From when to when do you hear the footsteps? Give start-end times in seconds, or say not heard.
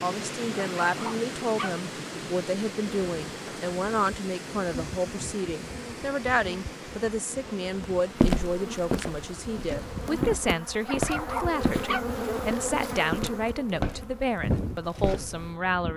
8.2-15.5.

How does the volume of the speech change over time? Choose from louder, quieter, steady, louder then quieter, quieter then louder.
steady.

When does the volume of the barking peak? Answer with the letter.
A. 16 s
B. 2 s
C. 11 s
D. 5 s
C.